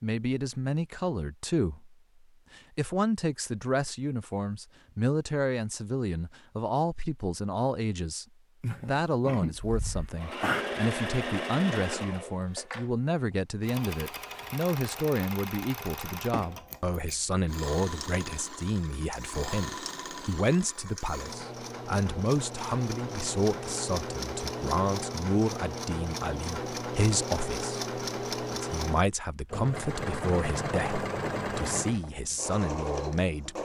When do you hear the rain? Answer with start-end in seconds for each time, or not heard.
not heard.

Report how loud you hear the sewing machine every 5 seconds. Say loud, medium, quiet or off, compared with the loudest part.
off, off, loud, medium, loud, loud, loud.